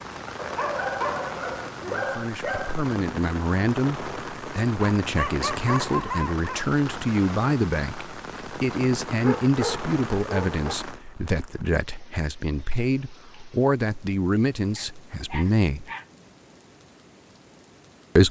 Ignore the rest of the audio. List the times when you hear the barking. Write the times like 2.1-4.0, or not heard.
0.3-2.9, 5.0-6.7, 9.2-10.8, 14.8-16.1.